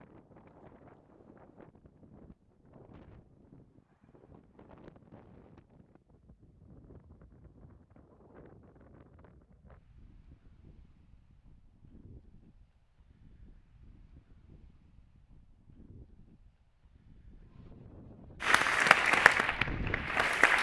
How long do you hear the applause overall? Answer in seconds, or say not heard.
2 s.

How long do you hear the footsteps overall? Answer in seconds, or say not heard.
not heard.